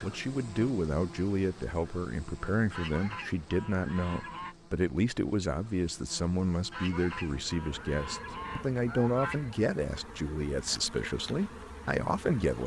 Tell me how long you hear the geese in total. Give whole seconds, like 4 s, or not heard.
5 s.